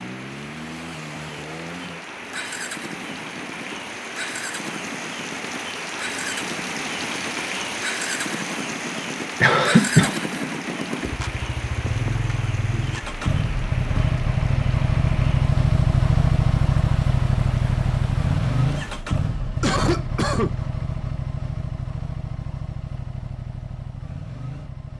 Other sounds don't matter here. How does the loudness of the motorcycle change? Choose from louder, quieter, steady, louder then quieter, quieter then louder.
louder then quieter.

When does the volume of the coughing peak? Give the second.
10 s.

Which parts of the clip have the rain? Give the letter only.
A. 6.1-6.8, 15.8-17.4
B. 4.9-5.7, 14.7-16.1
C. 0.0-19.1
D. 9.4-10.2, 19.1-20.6
C.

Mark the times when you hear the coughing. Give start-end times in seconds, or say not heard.
9.4-10.2, 19.1-20.6.